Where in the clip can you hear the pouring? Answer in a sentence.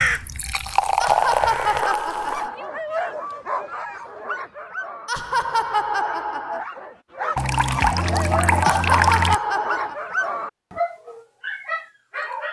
The pouring can be heard from 0.1 to 2.5 s and from 7.3 to 9.4 s.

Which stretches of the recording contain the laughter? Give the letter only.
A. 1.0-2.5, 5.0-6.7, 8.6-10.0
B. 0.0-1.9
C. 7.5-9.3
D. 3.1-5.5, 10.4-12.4
A.